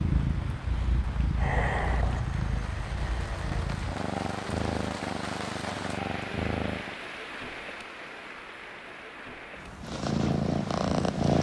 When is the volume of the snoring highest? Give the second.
2 s.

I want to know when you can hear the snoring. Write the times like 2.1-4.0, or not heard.
1.4-3.8.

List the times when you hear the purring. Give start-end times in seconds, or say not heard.
0.0-7.0, 9.8-11.3.